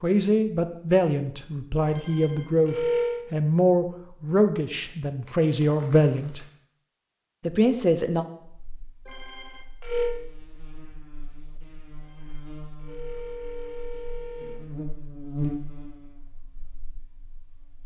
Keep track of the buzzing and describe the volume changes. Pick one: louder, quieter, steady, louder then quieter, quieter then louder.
louder then quieter.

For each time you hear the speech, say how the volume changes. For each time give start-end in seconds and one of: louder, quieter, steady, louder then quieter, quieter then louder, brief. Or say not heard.
0.0-6.5 steady
7.4-8.2 brief.